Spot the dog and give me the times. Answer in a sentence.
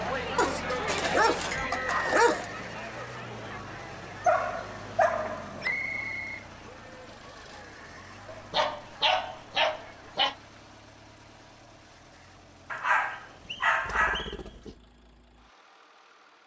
The dog can be heard from 0.3 to 2.5 s, from 4.2 to 5.8 s, from 8.2 to 10.3 s and from 12.7 to 14.8 s.